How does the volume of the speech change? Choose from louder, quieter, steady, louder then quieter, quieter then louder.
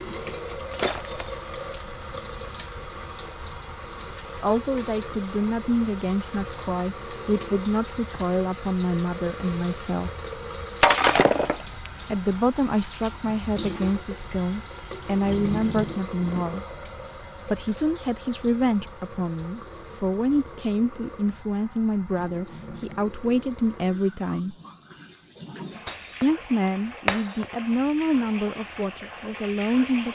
steady.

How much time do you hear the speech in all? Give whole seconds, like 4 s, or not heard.
21 s.